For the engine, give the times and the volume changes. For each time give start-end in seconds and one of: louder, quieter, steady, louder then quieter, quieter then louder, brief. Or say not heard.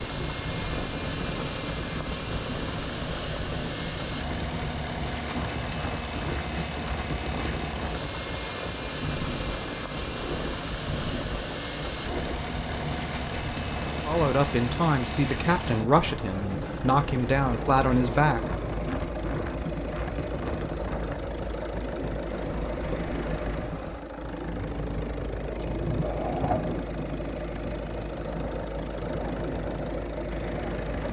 0.0-31.0 steady.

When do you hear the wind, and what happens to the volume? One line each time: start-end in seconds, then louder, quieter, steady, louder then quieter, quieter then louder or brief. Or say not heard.
0.0-31.0 steady.